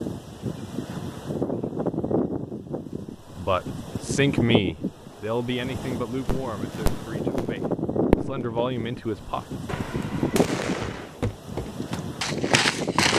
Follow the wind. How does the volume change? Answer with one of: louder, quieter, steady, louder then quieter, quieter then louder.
steady.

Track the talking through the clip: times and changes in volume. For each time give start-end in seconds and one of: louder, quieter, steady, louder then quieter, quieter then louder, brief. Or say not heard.
3.4-9.4 quieter then louder.